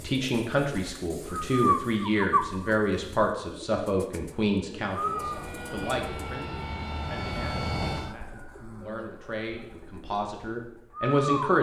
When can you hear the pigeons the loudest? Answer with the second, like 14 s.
2 s.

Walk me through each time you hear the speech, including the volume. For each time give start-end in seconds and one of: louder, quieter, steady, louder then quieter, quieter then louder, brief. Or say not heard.
0.0-11.5 quieter then louder.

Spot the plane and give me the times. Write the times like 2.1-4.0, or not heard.
5.0-8.2.